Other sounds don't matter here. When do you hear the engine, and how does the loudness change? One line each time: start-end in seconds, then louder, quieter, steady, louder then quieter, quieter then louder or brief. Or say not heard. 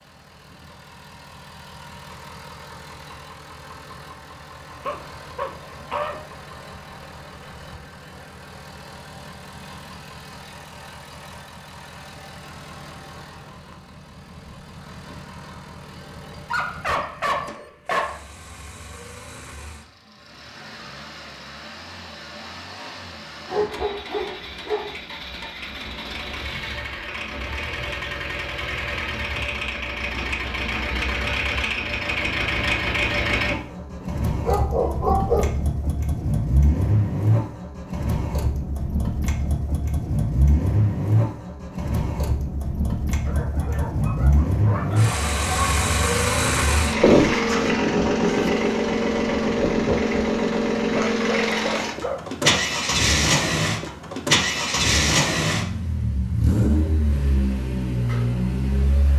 0.0-59.1 louder.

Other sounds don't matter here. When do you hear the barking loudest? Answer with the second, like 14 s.
35 s.